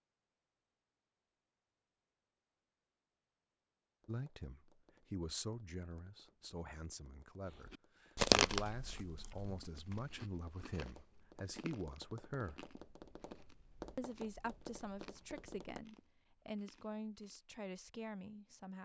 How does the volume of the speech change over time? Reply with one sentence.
The volume of the speech stays about the same.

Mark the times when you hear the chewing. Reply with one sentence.
The chewing can be heard from 7.7 to 17.4 s.